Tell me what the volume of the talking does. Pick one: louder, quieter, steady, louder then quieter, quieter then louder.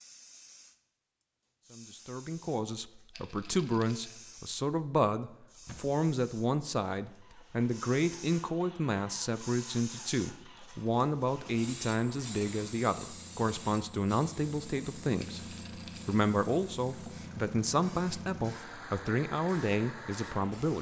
steady.